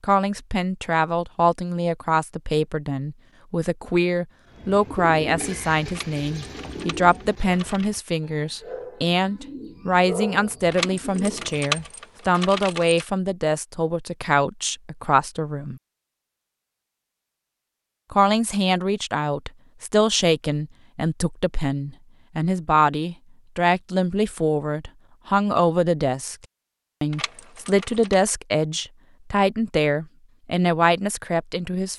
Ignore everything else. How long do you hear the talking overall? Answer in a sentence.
The talking can be heard for 29 seconds in total.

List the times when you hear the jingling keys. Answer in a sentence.
You can hear the jingling keys from 5.8 to 8.0 s, from 10.7 to 13.1 s and from 27.1 to 28.1 s.